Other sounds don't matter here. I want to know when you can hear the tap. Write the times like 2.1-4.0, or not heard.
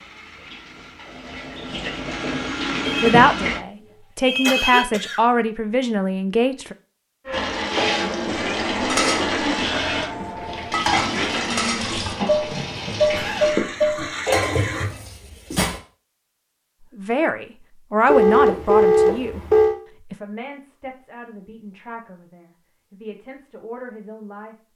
0.0-3.6, 7.3-14.8.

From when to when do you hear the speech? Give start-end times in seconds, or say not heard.
3.0-6.8, 16.9-19.4, 20.1-24.6.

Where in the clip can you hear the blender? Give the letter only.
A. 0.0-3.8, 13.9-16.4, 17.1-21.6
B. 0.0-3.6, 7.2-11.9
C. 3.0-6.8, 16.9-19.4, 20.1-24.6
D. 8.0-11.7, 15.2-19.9
B.